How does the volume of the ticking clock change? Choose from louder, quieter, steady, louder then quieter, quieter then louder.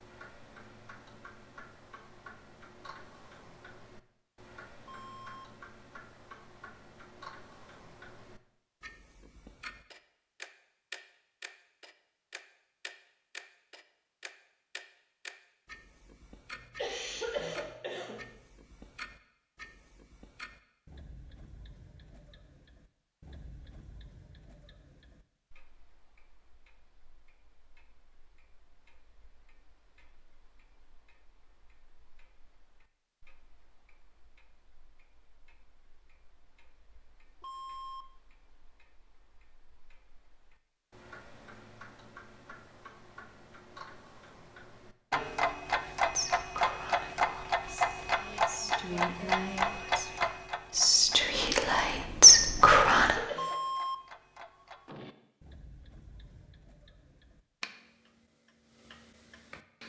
quieter then louder.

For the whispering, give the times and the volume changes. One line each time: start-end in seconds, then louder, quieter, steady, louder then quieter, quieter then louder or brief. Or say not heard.
46.1-53.1 louder.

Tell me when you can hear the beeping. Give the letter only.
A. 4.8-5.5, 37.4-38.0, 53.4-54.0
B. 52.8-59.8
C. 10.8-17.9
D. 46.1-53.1
A.